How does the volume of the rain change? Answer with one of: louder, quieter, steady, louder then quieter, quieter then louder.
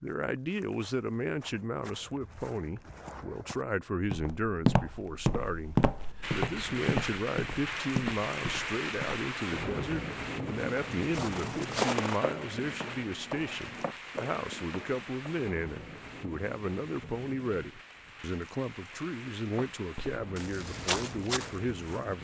quieter.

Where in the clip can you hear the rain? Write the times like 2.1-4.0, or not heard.
6.2-22.1.